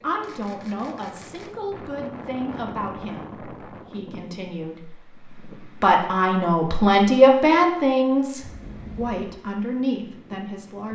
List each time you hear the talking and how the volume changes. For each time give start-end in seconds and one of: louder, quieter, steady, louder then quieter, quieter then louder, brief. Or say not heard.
0.0-10.9 louder then quieter.